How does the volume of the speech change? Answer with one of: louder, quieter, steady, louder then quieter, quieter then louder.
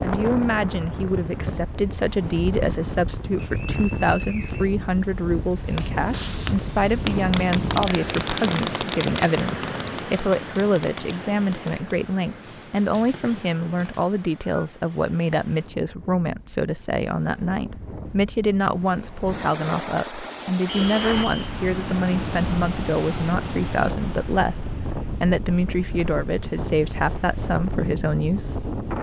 steady.